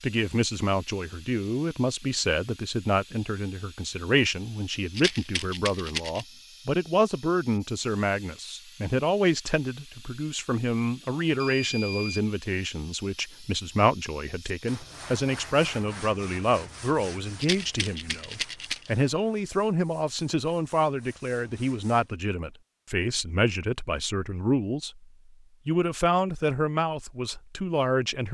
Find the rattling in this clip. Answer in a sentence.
The rattling can be heard from 5.0 to 6.2 s and from 17.4 to 18.9 s.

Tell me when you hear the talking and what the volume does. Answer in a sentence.
You can hear the talking from 0.0 to 25.0 s, at a steady volume; and briefly from 25.6 to 28.3 s.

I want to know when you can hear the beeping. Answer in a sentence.
The beeping can be heard from 11.2 to 12.2 s.